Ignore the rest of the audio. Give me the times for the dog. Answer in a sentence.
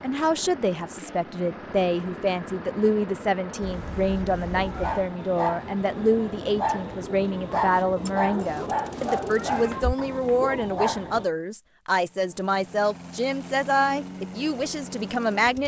You can hear the dog from 4.5 to 11.2 s.